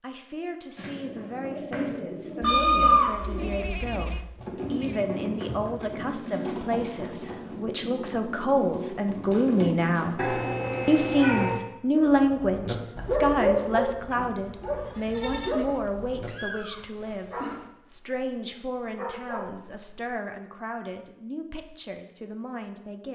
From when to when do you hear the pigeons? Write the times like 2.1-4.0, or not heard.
0.8-10.1.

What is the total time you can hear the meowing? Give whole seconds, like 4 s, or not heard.
5 s.